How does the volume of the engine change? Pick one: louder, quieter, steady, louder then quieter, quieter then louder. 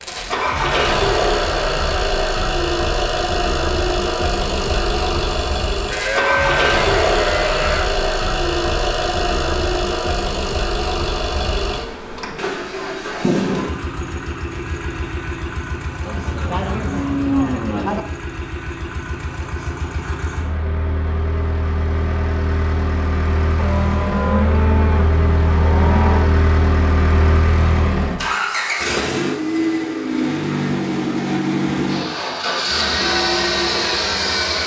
quieter then louder.